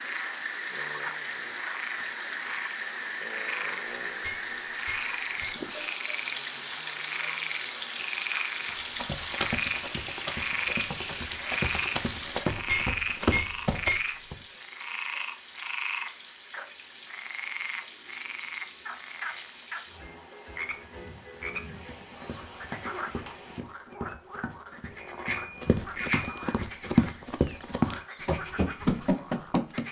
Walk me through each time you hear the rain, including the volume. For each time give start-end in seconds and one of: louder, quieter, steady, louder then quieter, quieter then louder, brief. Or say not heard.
0.0-23.6 quieter.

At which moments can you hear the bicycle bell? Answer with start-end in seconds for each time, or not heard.
4.0-5.8, 12.5-14.3, 25.2-26.4.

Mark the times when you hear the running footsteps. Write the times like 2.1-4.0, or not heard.
8.7-14.4, 21.8-29.8.